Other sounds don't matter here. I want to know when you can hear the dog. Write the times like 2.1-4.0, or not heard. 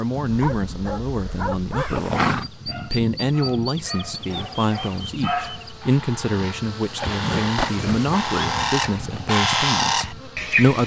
0.2-5.8.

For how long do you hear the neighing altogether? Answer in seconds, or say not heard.
2 s.